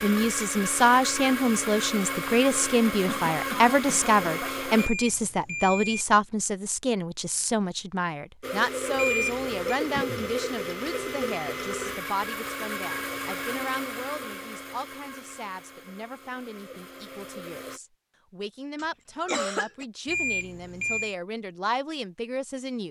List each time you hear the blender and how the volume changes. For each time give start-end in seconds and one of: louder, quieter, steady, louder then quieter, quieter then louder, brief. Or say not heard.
0.0-4.9 steady
8.4-17.8 quieter.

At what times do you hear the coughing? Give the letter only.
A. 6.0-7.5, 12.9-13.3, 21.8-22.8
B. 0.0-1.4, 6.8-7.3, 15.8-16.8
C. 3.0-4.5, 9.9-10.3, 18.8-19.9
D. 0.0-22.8
C.